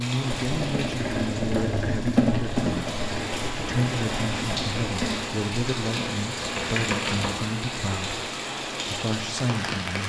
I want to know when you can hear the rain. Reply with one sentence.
You can hear the rain from 0.0 to 10.0 s.